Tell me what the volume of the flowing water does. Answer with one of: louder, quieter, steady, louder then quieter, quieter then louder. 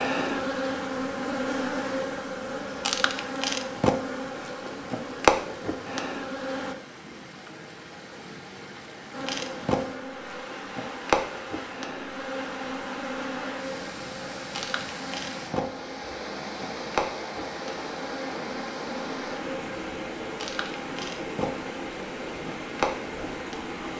louder.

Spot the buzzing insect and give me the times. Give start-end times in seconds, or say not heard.
0.0-6.8, 9.1-23.8.